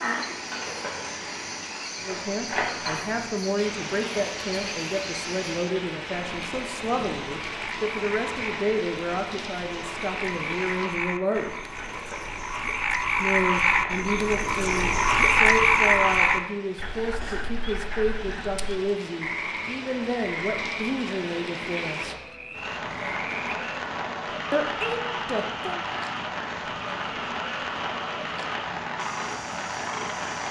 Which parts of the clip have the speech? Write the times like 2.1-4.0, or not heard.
2.0-11.6, 13.2-22.1, 24.5-25.9.